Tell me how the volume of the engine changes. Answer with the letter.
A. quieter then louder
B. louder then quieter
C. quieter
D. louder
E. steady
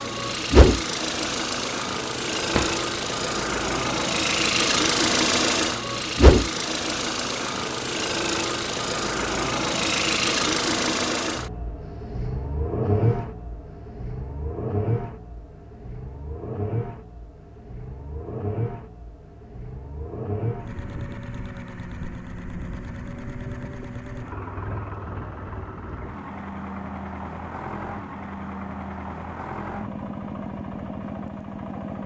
C.